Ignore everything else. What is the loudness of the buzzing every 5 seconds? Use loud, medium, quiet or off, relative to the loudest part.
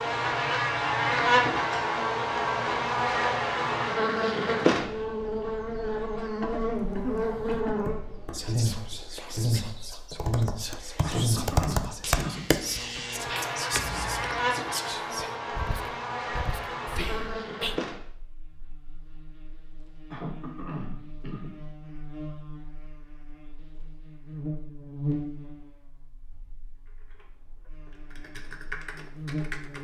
loud, medium, medium, medium, quiet, quiet.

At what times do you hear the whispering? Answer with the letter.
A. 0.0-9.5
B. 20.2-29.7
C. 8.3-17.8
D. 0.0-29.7
C.